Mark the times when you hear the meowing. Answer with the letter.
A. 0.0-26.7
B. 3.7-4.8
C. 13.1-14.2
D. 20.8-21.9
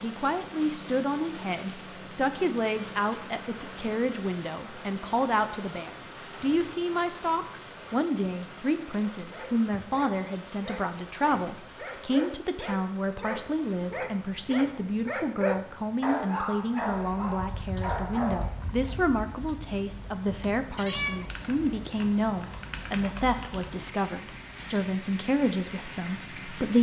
D.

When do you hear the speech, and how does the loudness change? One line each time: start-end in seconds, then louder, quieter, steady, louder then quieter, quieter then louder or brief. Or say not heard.
0.0-26.7 steady.